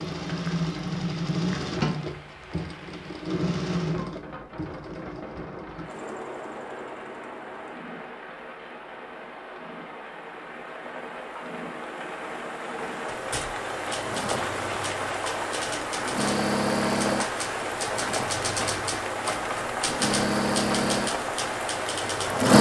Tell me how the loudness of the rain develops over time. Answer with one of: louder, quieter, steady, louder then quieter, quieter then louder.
louder.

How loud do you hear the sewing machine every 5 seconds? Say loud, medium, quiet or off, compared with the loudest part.
medium, quiet, quiet, medium, loud.